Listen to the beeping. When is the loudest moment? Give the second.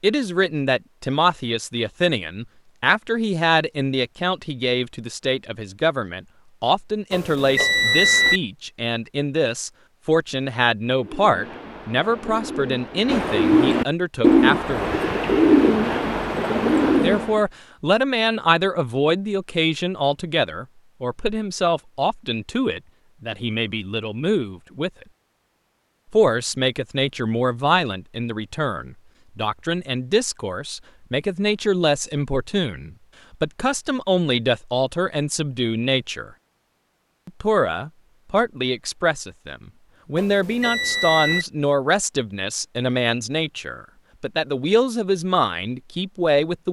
8 s.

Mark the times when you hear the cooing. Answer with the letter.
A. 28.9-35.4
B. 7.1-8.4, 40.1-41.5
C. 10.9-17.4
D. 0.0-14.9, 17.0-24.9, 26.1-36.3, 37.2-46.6
C.